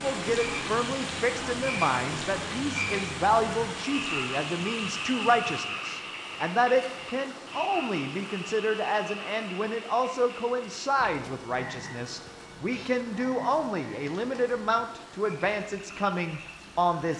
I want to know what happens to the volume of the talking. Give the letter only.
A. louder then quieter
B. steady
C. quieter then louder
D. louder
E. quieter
B.